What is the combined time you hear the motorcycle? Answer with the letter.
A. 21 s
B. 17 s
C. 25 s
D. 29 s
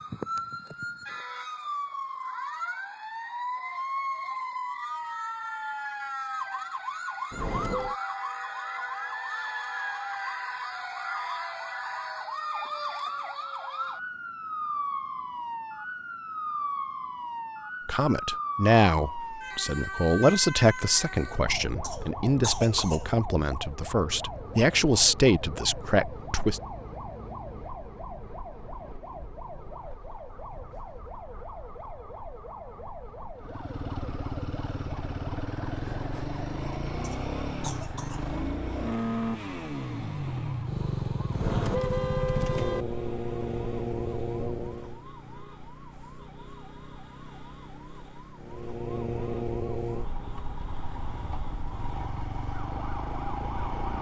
B.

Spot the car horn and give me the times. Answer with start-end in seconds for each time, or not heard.
7.3-8.0, 41.3-42.9.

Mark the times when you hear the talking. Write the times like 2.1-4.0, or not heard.
17.9-26.6.